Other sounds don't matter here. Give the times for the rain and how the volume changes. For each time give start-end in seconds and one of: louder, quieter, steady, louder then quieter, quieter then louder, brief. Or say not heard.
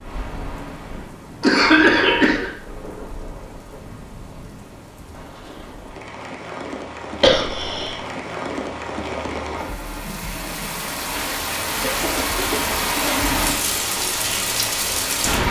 0.0-15.4 louder.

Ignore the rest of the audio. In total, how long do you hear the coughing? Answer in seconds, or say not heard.
3 s.